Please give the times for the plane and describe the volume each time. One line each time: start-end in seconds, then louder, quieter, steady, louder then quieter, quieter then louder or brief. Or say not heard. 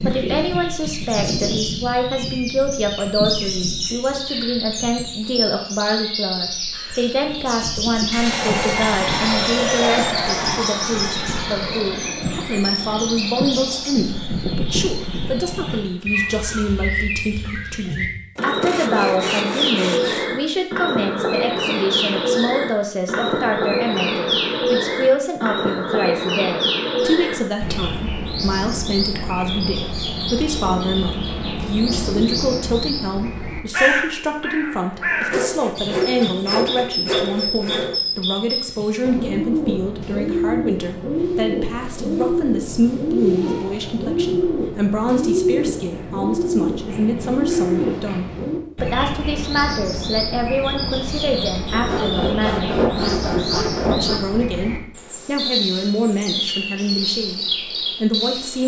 8.2-16.8 quieter.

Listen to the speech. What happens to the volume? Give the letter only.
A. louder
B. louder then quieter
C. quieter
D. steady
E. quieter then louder
D.